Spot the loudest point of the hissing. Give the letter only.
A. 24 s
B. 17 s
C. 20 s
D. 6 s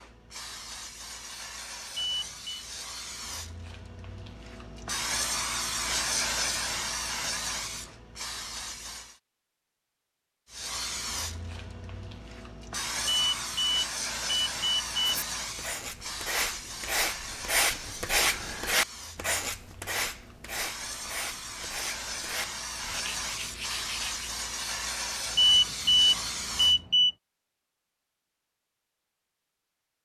D.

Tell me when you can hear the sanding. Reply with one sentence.
You can hear the sanding from 15.1 to 24.3 s.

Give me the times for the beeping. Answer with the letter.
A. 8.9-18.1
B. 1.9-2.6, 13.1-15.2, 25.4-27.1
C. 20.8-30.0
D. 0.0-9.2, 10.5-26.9
B.